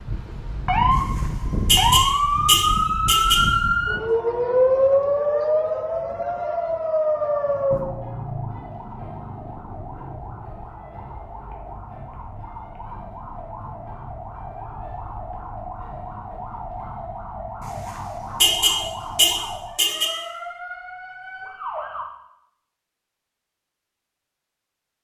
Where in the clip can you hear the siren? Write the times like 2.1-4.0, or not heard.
0.0-22.1.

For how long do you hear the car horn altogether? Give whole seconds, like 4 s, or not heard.
5 s.